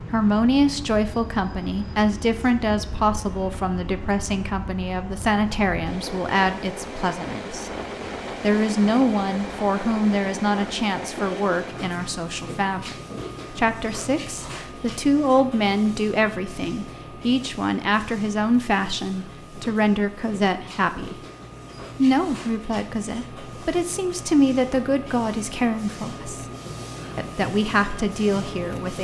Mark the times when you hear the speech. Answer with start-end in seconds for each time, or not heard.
0.1-7.7, 8.4-21.1, 21.9-26.4, 27.1-29.0.